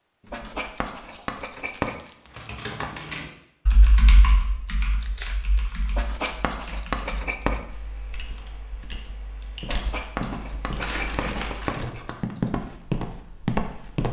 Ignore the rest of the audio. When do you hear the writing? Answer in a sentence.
The writing can be heard from 0.2 to 1.9 s, from 5.9 to 7.6 s and from 9.6 to 12.3 s.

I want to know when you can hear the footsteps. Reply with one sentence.
You can hear the footsteps from 9.6 to 14.0 s.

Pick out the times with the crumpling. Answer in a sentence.
The crumpling can be heard from 0.2 to 2.9 s, from 5.0 to 6.9 s and from 10.8 to 11.9 s.